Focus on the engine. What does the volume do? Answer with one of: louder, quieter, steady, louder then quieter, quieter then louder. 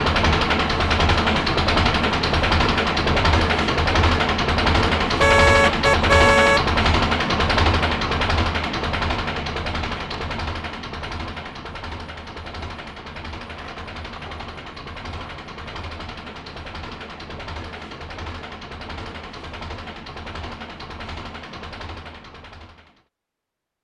quieter.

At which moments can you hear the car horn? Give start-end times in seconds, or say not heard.
5.2-6.7.